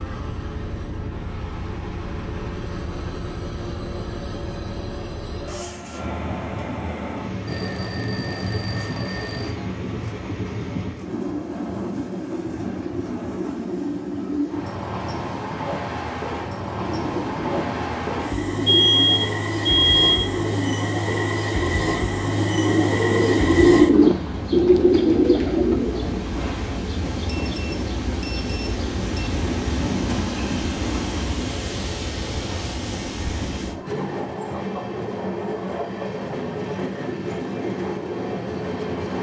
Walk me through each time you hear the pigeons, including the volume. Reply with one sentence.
The pigeons can be heard from 16.8 to 26.2 s, getting louder.